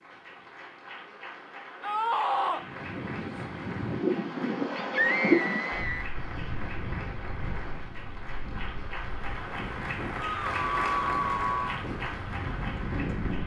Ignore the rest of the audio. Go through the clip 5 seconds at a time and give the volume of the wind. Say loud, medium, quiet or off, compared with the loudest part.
loud, loud, medium.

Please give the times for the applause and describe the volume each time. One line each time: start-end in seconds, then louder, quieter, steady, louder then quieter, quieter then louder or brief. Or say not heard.
0.0-13.4 louder.